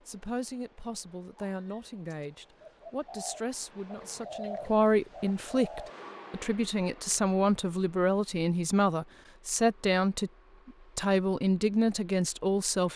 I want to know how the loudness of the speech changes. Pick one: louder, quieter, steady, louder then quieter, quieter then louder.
louder.